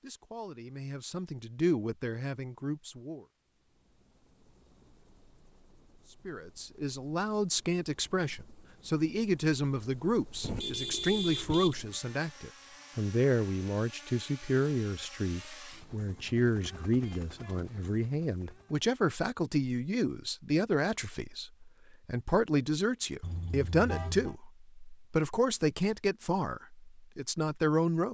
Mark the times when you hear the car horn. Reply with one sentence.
You can hear the car horn from 10.4 to 11.8 s and from 23.2 to 24.4 s.